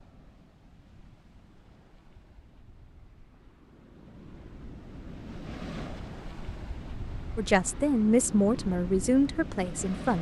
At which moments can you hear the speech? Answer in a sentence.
The speech can be heard from 7.3 to 10.1 s.